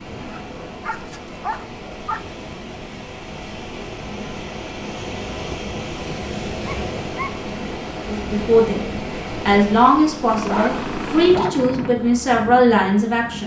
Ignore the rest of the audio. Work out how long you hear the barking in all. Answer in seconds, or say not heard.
4 s.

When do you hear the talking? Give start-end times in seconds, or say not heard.
8.1-8.8, 9.4-13.4.